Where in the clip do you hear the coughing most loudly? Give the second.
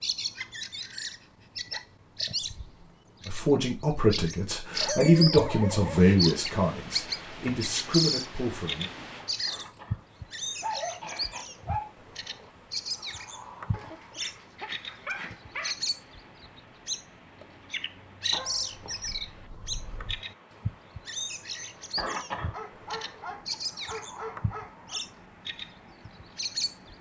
22 s.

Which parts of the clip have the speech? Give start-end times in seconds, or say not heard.
3.2-8.9.